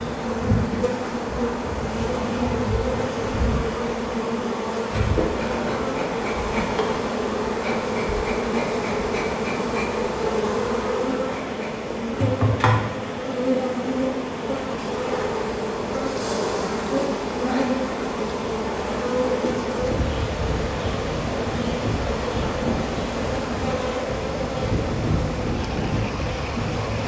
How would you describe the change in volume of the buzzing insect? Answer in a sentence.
The volume of the buzzing insect stays about the same.